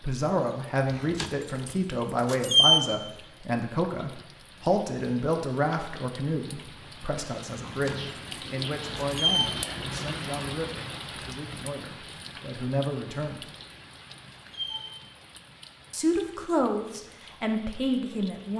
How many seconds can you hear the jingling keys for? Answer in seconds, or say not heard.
5 s.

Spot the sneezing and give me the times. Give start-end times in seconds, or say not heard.
7.6-9.8.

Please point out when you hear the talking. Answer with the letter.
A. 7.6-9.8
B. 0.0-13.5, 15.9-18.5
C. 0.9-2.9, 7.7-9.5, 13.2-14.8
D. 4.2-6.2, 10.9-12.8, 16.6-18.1
B.